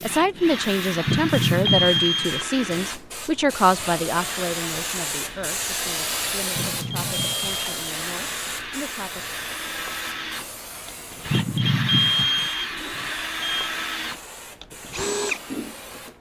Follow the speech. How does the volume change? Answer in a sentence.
The loudness of the speech goes down.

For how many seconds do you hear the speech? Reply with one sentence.
You can hear the speech for 9 seconds altogether.